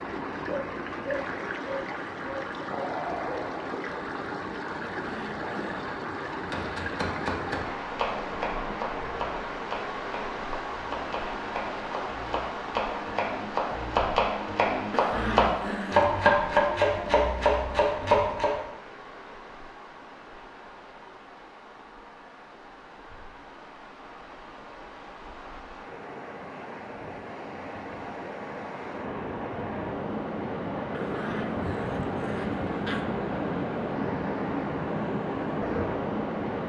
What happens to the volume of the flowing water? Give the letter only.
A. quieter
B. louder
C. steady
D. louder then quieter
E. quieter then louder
E.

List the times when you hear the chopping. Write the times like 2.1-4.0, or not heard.
6.5-18.6.